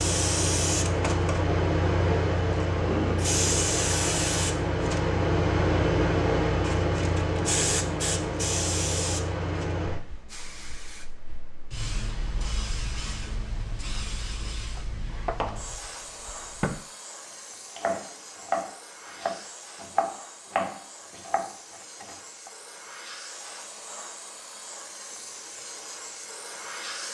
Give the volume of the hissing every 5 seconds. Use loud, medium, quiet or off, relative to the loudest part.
loud, loud, quiet, quiet, quiet, quiet.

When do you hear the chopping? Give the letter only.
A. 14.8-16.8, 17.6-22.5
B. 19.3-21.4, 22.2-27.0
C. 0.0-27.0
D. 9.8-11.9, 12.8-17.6
A.